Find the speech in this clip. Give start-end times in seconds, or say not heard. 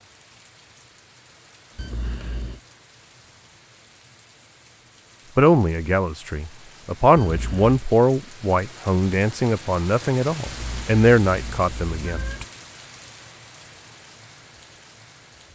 5.3-12.4.